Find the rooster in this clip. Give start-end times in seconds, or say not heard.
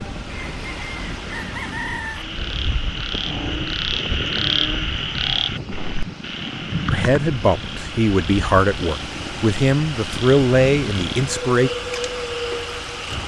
0.2-2.2.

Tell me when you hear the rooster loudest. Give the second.
2 s.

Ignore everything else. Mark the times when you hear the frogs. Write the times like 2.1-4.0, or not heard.
2.1-13.2.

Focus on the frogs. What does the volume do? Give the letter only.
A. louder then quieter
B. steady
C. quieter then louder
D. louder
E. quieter
E.